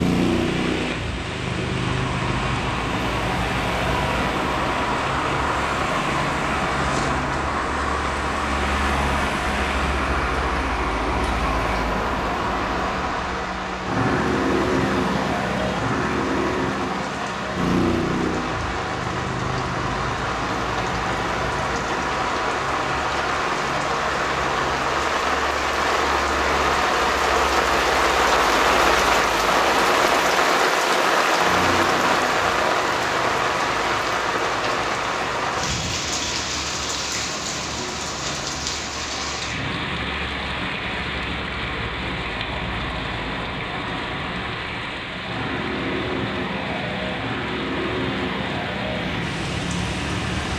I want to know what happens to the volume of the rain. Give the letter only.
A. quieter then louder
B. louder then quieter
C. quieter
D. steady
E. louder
B.